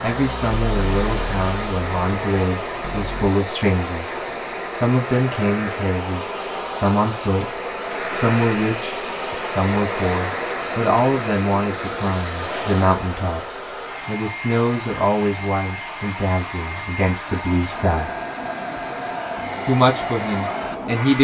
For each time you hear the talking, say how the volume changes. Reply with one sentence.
The talking can be heard from 0.0 to 18.1 s, at a steady volume; and briefly from 19.6 to 21.2 s.